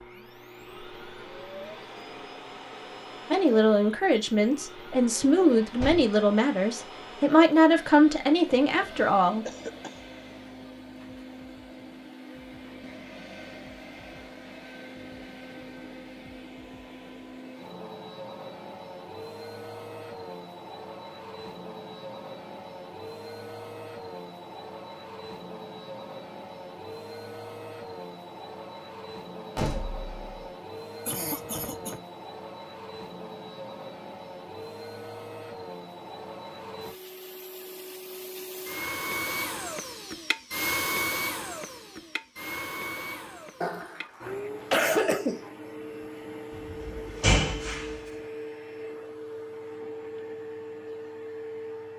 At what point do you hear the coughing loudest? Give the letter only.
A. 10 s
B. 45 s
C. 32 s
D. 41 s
B.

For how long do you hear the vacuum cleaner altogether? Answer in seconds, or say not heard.
52 s.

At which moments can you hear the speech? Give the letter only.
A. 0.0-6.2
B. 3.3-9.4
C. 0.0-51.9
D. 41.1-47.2
B.